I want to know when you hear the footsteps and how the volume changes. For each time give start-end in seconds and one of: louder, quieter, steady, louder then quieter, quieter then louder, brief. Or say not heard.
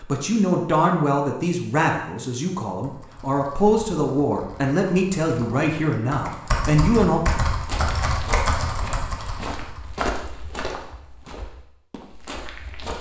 7.5-12.9 louder then quieter.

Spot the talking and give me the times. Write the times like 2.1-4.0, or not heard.
0.0-7.2.